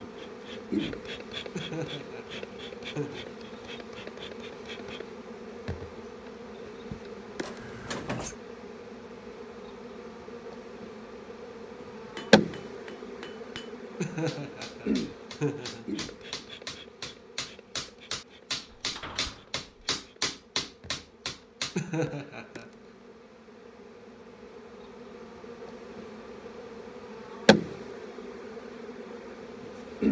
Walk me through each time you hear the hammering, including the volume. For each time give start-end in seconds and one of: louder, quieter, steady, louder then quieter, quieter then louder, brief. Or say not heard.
11.8-21.8 louder.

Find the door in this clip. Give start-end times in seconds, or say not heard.
7.4-8.3, 18.7-19.7.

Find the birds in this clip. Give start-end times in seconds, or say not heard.
not heard.